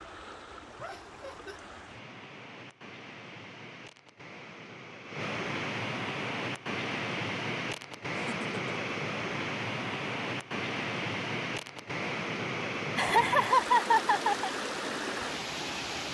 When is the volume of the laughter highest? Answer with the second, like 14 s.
14 s.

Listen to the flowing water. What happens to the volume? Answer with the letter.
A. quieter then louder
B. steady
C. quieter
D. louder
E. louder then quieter
D.